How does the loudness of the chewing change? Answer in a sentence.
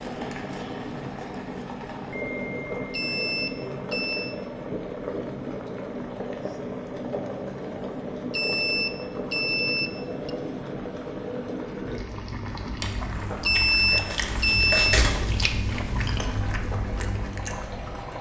The volume of the chewing goes up, then down.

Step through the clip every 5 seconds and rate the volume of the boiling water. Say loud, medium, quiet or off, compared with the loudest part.
loud, loud, loud, medium.